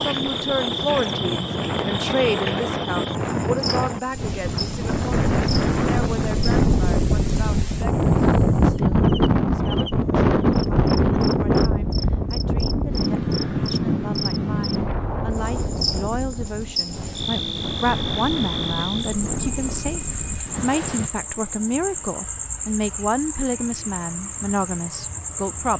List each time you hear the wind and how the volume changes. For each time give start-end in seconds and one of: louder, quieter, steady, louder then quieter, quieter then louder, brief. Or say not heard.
0.0-21.1 louder then quieter.